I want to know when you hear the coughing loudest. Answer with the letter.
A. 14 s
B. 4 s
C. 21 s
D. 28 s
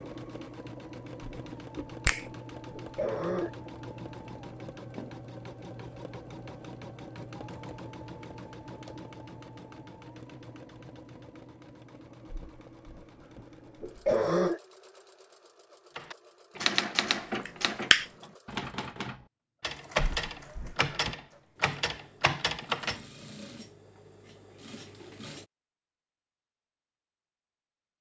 A.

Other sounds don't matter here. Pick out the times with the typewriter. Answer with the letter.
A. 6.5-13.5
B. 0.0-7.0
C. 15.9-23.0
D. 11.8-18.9
C.